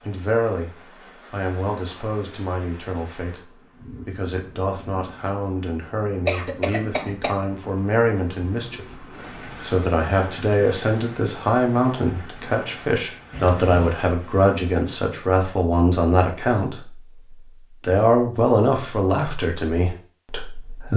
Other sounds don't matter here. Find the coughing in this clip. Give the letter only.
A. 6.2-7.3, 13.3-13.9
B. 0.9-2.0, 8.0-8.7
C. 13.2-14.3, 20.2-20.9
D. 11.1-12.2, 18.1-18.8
A.